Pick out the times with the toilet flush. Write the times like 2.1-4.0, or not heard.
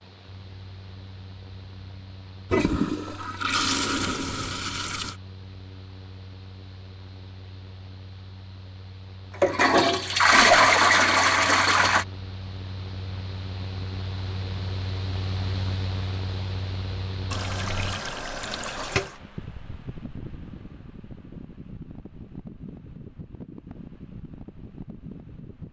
2.5-5.2, 9.3-12.1, 17.3-19.1.